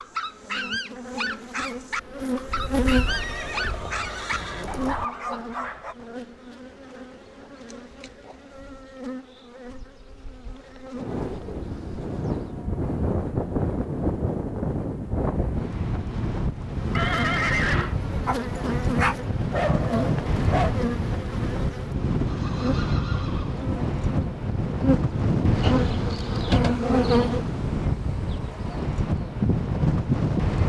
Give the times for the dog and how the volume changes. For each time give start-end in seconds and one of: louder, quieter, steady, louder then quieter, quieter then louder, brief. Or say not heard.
0.0-6.0 steady
18.2-20.8 brief.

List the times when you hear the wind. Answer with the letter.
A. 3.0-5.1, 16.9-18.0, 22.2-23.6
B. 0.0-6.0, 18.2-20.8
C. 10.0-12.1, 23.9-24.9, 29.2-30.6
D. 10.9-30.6
D.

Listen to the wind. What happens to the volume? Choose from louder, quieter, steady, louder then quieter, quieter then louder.
steady.